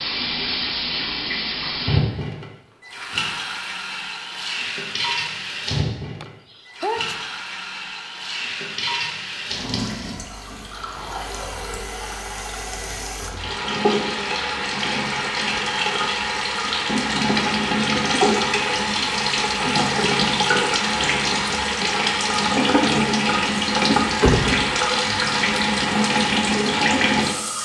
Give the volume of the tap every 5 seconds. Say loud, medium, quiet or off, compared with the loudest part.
medium, medium, medium, loud, loud, loud.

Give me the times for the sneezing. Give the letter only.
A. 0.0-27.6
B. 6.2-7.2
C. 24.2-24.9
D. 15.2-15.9
B.